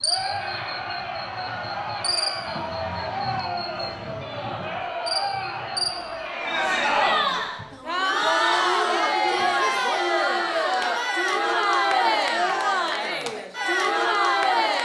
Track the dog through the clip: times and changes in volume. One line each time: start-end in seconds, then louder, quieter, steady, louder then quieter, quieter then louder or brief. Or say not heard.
not heard.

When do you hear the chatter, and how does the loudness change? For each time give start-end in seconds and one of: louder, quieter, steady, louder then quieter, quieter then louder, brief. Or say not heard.
0.0-14.8 louder.